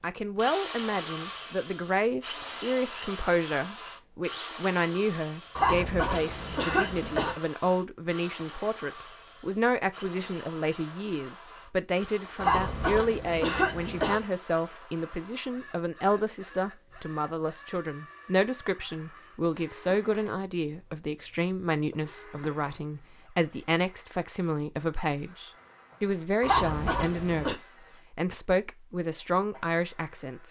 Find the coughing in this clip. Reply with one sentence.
You can hear the coughing from 5.5 to 7.3 s, from 12.3 to 14.2 s and from 26.4 to 27.6 s.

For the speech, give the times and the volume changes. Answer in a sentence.
The speech can be heard from 0.0 to 30.4 s, at a steady volume.